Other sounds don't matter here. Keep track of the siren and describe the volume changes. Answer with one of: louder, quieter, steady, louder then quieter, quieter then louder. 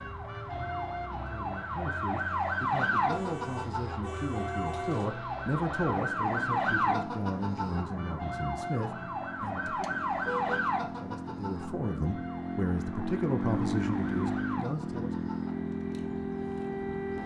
quieter.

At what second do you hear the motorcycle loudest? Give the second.
14 s.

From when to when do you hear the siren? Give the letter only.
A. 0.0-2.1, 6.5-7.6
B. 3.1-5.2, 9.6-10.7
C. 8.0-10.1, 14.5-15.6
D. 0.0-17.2
D.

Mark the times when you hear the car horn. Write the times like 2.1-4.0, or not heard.
3.1-5.2, 9.6-10.7.